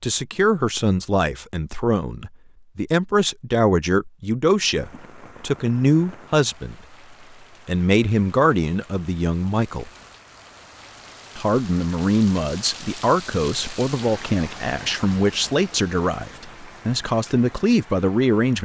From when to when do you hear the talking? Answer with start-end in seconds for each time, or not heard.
0.0-6.8, 7.7-9.9, 11.3-18.6.